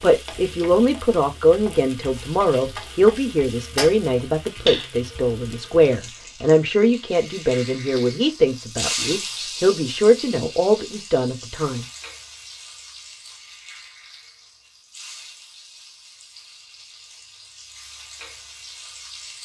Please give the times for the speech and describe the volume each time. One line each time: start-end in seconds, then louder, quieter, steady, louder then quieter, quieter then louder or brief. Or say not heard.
0.0-11.8 steady.